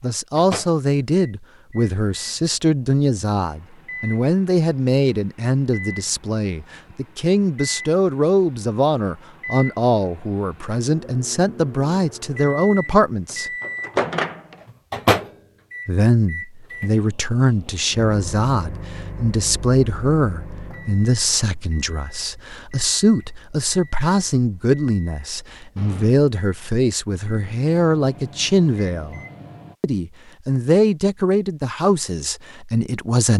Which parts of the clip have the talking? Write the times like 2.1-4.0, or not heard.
0.0-13.5, 15.8-29.2, 29.8-33.3.